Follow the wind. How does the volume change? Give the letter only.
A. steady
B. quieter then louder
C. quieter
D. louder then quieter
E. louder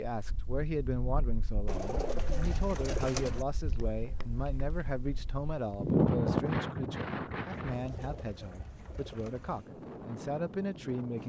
D.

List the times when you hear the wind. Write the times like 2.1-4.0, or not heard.
0.1-11.2.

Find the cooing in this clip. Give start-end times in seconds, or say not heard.
1.6-3.5, 7.8-9.6.